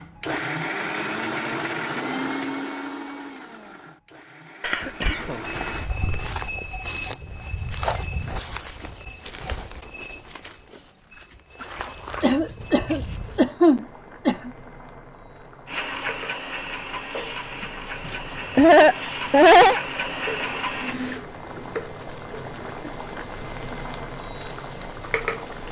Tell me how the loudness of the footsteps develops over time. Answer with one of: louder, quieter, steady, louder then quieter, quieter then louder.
quieter then louder.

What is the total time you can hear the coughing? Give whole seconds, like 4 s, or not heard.
6 s.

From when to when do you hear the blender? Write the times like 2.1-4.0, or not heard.
0.0-5.9, 15.7-21.2.